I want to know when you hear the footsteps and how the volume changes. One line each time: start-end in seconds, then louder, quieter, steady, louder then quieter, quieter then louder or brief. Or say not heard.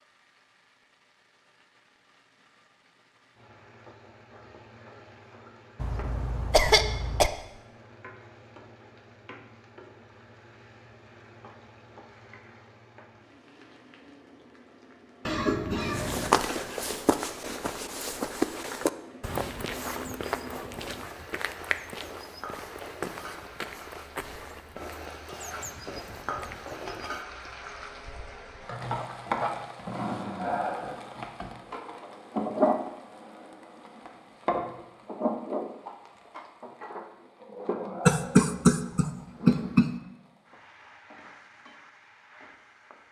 15.8-27.2 quieter.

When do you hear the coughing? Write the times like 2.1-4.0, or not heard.
5.8-7.3, 15.2-16.4, 38.0-39.9.